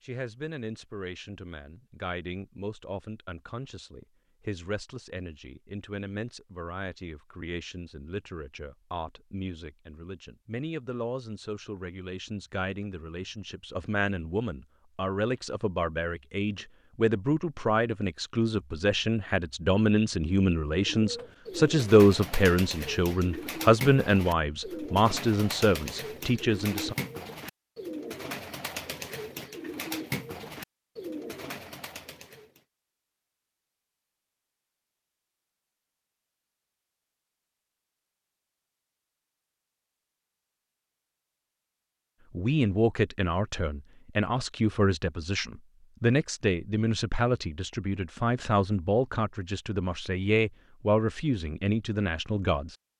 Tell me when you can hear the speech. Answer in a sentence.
The speech can be heard from 0.0 to 26.9 s and from 42.3 to 52.8 s.